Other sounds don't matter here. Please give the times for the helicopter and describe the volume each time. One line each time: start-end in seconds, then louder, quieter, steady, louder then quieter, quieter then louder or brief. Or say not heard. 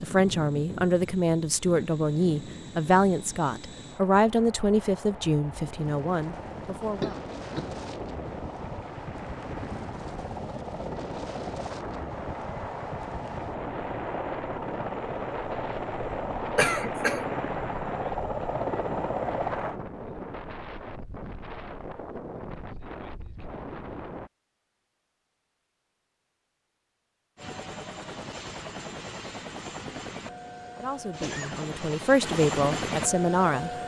0.0-19.8 louder
27.4-33.8 louder.